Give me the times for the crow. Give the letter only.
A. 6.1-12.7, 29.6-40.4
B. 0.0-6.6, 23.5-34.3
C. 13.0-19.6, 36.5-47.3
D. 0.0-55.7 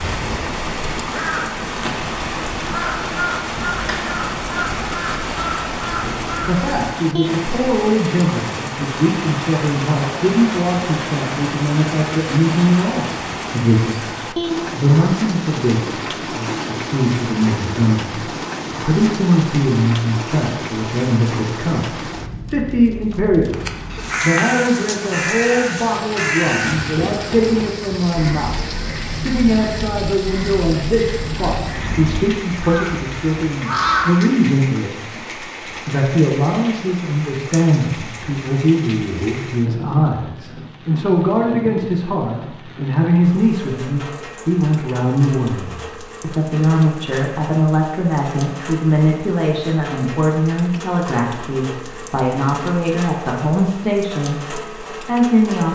B.